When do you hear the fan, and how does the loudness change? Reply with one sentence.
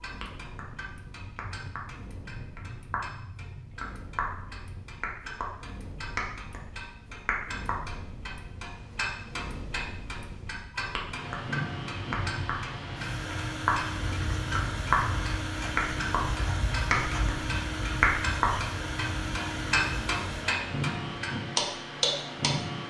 You can hear the fan from 0.0 to 22.8 s, getting louder.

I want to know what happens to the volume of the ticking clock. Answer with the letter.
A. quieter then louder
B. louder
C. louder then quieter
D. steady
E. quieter
B.